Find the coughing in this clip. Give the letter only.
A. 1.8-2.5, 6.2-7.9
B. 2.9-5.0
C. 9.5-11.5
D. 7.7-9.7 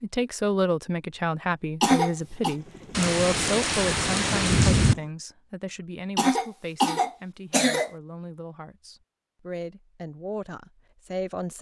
A.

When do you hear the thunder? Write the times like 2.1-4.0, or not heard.
2.9-5.0.